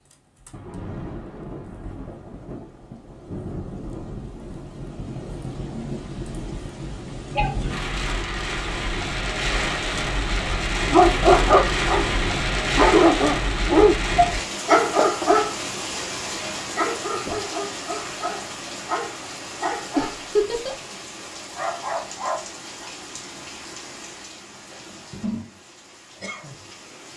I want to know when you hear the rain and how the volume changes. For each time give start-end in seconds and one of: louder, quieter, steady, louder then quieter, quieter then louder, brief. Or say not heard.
0.0-27.1 louder then quieter.